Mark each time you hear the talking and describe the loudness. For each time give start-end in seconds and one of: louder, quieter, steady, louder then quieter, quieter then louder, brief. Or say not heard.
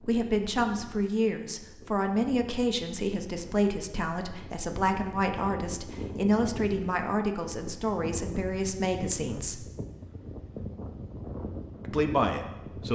0.1-9.7 steady
11.8-12.8 brief.